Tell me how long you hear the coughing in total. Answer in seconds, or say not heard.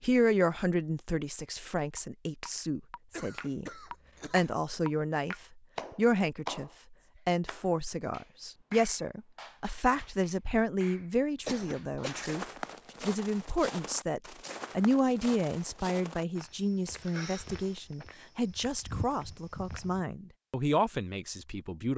3 s.